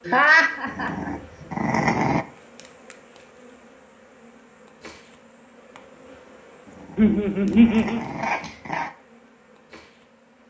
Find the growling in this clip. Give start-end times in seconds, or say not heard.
0.7-2.2, 6.7-8.9.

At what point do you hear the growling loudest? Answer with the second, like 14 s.
2 s.